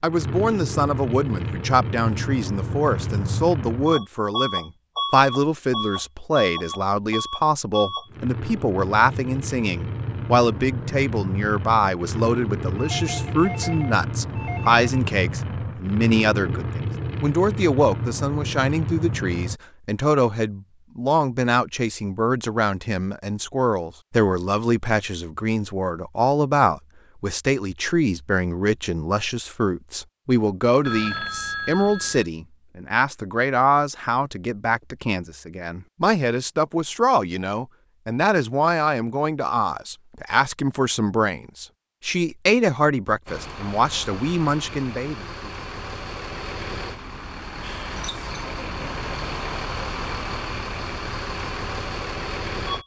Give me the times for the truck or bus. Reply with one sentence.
The truck or bus can be heard from 0.0 to 19.6 s and from 43.2 to 52.8 s.